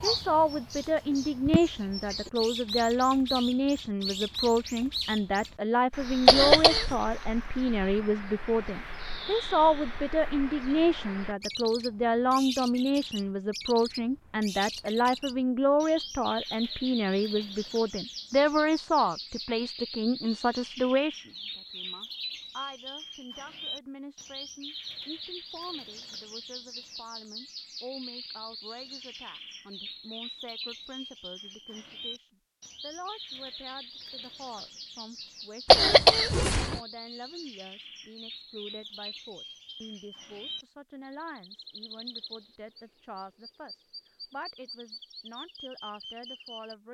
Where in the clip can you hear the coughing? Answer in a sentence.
The coughing can be heard from 6.2 to 6.9 s and from 35.7 to 36.8 s.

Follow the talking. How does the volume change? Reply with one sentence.
The volume of the talking goes down.